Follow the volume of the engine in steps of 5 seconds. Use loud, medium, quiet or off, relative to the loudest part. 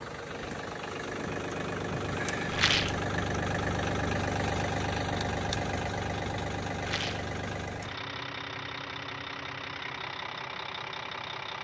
loud, loud, medium.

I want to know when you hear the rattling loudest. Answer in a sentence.
The loudest moment of the rattling is at 3 seconds.